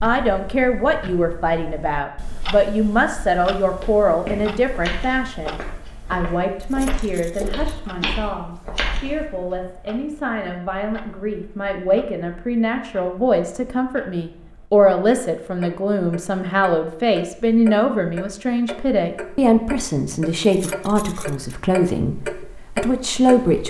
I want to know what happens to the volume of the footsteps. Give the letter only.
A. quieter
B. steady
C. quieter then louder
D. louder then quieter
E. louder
C.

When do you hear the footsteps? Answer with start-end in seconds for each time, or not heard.
3.7-9.2.